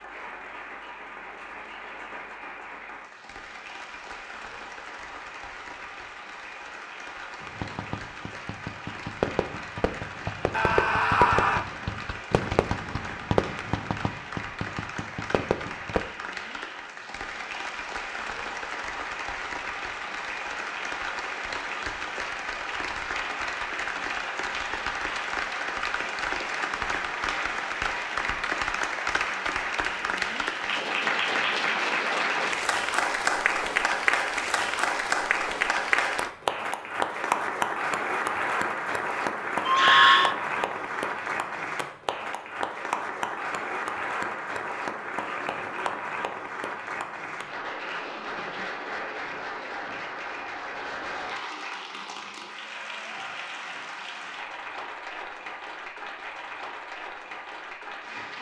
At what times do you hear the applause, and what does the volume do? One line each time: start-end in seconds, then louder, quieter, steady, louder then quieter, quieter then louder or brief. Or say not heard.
0.0-58.3 louder then quieter.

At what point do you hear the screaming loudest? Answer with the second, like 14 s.
40 s.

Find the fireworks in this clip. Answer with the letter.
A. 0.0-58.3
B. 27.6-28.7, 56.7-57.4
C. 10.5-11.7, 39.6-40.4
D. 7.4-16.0
D.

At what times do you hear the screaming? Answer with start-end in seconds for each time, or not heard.
10.5-11.7, 39.6-40.4.